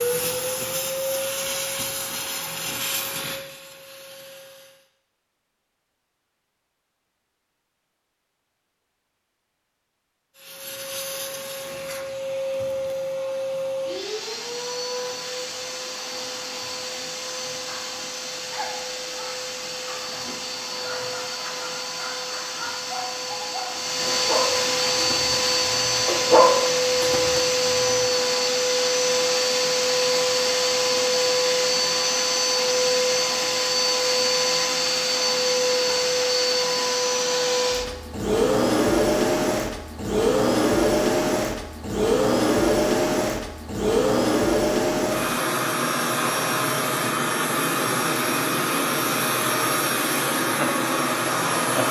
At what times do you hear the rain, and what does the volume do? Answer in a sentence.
The rain can't be heard in this clip.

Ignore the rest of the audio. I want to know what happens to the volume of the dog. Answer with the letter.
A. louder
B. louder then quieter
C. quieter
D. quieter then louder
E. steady
A.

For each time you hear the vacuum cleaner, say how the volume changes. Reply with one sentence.
The vacuum cleaner can be heard from 0.0 to 4.9 s, getting quieter; and from 10.3 to 51.8 s, getting louder.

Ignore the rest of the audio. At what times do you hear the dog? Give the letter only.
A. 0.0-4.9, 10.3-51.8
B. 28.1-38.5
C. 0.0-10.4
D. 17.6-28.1
D.